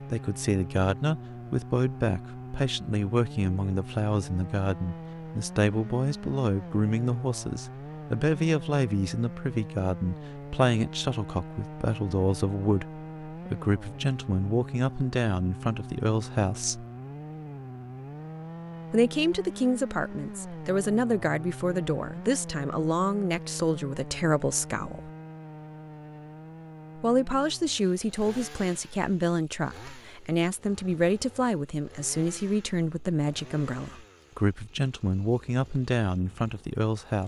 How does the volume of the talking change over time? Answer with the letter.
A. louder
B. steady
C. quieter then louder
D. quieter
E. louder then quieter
B.